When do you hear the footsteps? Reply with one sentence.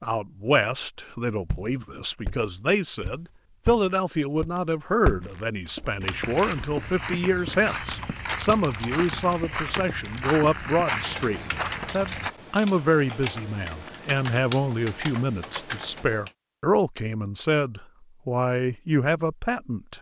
The footsteps can be heard from 1.4 to 12.3 s.